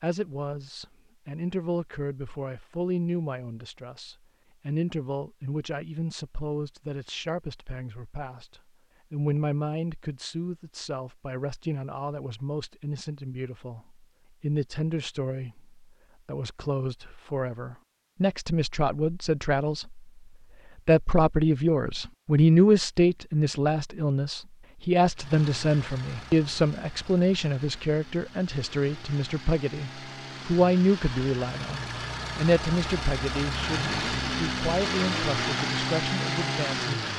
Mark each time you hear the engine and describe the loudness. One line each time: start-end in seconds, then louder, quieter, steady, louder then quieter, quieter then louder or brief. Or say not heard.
25.1-37.1 louder.